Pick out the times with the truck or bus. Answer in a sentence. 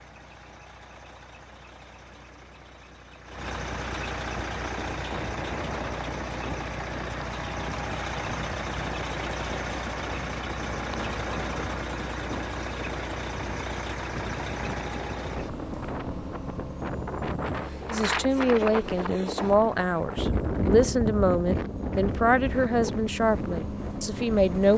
You can hear the truck or bus from 0.0 to 24.7 s.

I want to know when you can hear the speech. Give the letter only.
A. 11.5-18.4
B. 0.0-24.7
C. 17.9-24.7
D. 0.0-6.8
C.